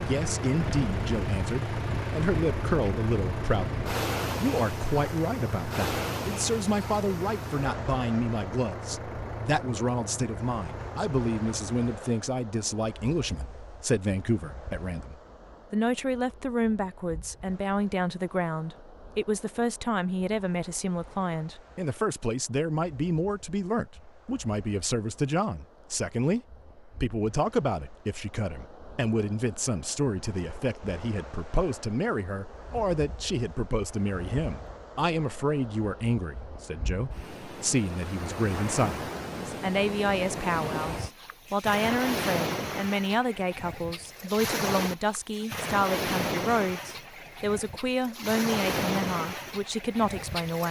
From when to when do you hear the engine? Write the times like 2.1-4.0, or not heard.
0.0-11.9.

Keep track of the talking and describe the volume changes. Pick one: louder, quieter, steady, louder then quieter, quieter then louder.
steady.